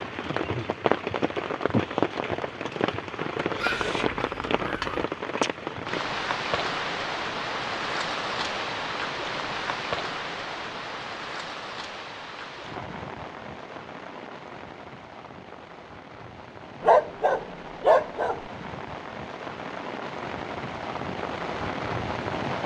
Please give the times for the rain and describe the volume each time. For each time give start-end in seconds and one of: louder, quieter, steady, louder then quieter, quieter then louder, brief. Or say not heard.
0.0-22.6 quieter then louder.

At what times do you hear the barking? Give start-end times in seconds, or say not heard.
3.5-5.0, 16.8-18.4.